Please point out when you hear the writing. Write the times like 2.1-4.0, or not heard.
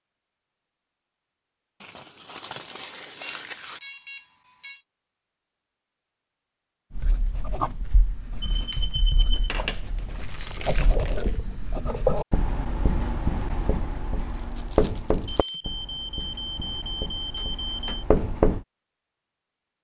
6.9-18.6.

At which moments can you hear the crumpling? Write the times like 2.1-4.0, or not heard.
1.8-3.8, 9.4-11.3, 14.3-15.6.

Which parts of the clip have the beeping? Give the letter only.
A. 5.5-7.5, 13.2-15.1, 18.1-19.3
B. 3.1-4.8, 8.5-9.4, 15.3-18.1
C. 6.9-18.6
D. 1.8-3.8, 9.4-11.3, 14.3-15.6
B.